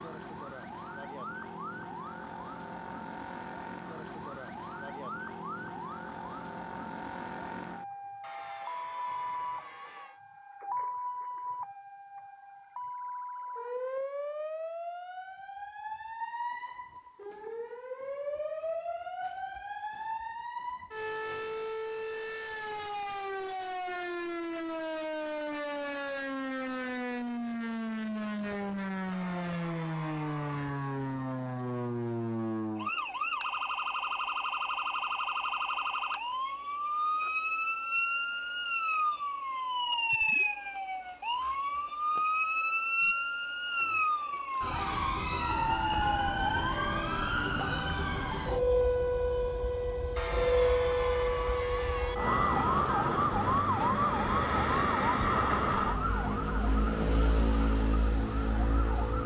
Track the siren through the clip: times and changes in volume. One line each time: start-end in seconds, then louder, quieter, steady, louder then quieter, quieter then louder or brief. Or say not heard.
0.0-59.2 louder.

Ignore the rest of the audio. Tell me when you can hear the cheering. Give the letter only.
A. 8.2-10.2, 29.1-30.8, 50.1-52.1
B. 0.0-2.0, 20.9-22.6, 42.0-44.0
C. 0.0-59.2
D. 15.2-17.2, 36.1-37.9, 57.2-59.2
A.